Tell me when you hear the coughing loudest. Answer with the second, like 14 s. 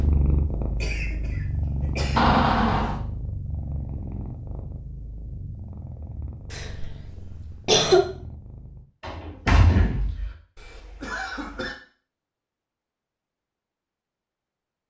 8 s.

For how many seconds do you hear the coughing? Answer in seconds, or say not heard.
4 s.